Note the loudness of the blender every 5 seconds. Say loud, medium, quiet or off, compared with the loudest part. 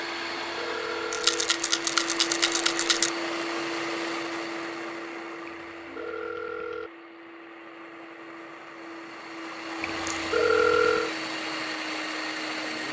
loud, medium, loud.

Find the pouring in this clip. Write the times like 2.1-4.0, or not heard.
not heard.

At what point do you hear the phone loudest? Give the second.
11 s.